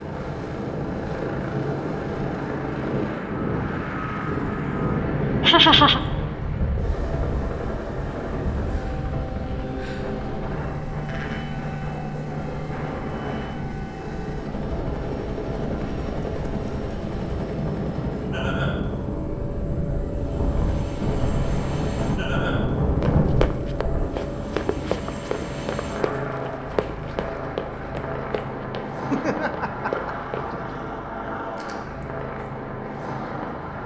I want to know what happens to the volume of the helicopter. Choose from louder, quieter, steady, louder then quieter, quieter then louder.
steady.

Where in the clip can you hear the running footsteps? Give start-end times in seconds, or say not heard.
23.0-30.5.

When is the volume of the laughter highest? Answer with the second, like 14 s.
6 s.